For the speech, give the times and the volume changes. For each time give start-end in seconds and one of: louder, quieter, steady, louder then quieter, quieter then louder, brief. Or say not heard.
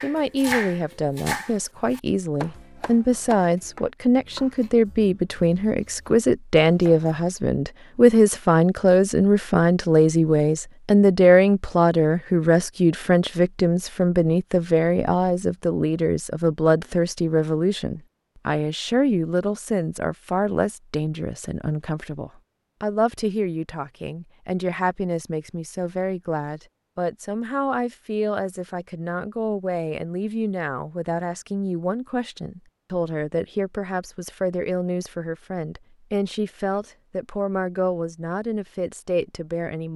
0.0-39.9 quieter.